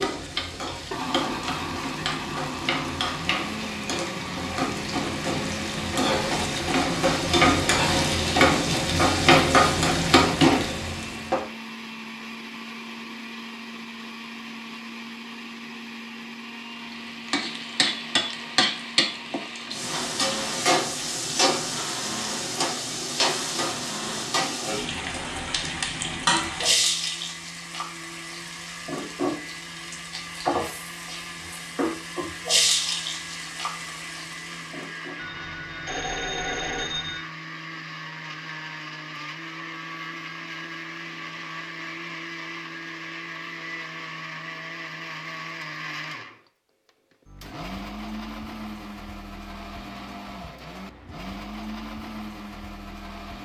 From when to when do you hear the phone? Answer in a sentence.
The phone can be heard from 35.1 to 37.2 s.